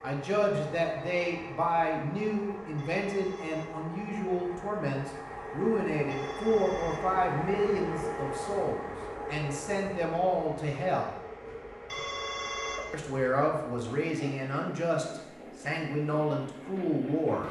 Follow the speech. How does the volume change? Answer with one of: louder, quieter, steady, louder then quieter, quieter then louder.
steady.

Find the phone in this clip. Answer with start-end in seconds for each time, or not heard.
2.8-3.9, 6.1-7.2, 11.8-12.9.